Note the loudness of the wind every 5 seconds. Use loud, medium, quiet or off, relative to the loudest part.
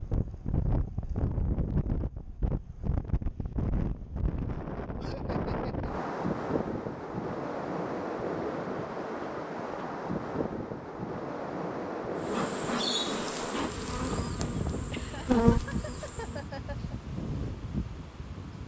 loud, loud, loud, medium.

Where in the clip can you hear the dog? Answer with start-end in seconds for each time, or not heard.
not heard.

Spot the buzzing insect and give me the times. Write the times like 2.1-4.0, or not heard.
12.2-16.4.